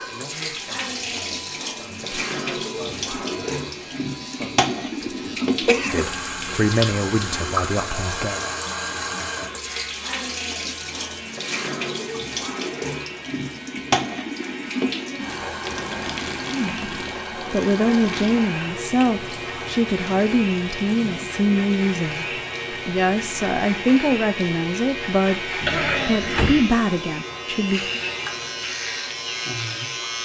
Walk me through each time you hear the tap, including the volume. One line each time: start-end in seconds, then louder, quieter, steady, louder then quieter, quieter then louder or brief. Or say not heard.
0.0-30.2 quieter.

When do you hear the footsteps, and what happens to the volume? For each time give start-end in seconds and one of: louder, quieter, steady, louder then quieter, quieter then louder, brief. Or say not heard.
not heard.